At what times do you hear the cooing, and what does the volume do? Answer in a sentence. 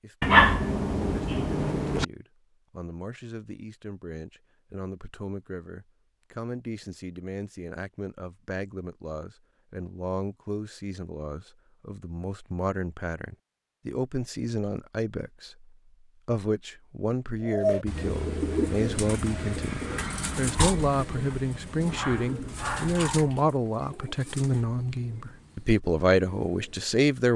You can hear the cooing from 17.4 to 26.9 s, getting quieter.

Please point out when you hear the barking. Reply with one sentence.
The barking can be heard from 0.2 to 2.0 s and from 21.9 to 23.4 s.